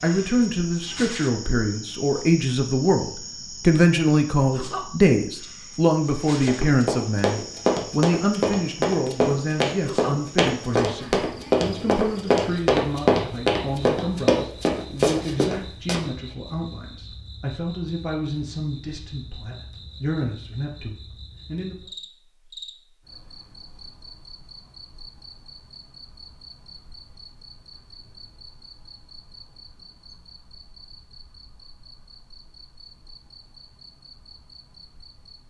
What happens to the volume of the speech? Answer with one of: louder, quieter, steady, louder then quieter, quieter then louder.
quieter.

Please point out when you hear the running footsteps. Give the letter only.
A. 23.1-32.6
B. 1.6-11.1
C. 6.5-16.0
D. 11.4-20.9
C.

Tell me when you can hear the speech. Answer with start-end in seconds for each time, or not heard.
0.0-21.8.